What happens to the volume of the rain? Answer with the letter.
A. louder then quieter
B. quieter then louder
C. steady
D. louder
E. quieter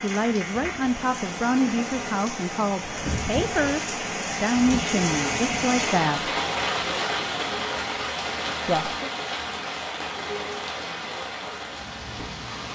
A.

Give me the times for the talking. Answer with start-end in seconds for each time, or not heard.
0.0-6.3, 8.7-9.1.